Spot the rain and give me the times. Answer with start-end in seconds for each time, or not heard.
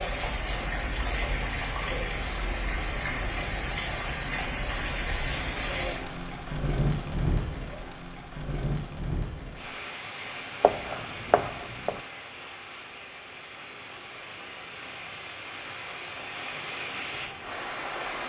0.0-18.2.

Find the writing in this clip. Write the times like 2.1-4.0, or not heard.
10.6-12.0.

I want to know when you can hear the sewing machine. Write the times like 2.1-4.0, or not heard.
not heard.